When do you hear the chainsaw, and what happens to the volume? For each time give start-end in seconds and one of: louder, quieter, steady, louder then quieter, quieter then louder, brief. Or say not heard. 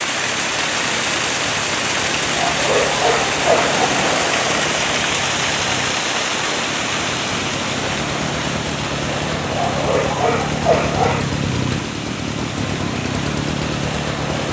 0.0-14.4 louder.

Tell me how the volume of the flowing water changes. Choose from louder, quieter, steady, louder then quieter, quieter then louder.
quieter.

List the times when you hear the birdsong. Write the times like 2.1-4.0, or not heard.
not heard.